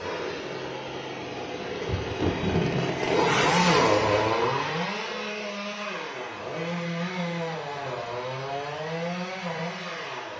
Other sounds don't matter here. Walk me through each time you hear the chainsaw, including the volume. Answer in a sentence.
The chainsaw can be heard from 0.0 to 10.3 s, getting louder then quieter.